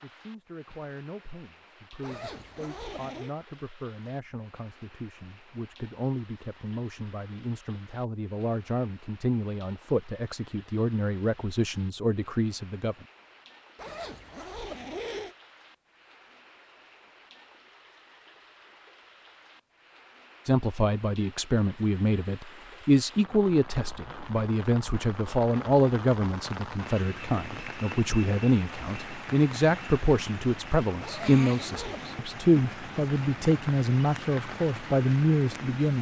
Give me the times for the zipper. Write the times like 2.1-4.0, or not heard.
2.0-3.4, 13.8-15.3, 31.0-32.2.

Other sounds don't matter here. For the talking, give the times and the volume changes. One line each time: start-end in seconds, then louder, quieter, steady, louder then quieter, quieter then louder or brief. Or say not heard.
0.0-12.9 louder
20.4-35.9 steady.